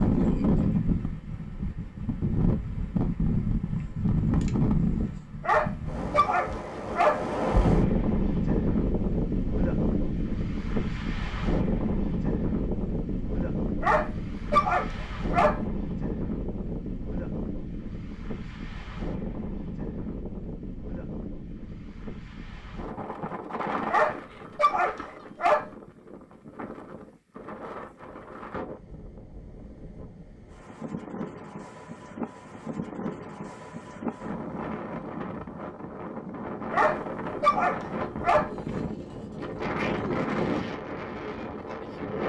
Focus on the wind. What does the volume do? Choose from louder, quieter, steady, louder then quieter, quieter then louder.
quieter then louder.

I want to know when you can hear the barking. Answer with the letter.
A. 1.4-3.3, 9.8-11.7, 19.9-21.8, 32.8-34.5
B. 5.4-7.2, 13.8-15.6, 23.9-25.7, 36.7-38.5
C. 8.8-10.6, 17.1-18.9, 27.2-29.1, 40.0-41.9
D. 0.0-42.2
B.